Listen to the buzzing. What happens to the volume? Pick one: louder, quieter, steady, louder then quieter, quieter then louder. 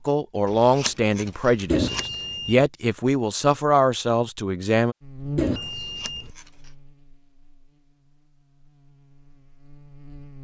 quieter then louder.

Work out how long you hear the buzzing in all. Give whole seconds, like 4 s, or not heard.
5 s.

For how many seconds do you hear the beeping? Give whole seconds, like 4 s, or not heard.
2 s.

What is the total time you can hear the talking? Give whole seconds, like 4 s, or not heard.
5 s.